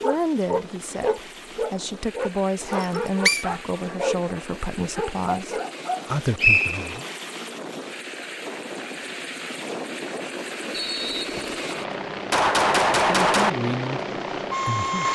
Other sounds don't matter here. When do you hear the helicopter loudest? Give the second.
15 s.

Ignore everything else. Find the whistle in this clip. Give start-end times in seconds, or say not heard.
2.7-3.5, 6.3-6.9, 10.7-11.6.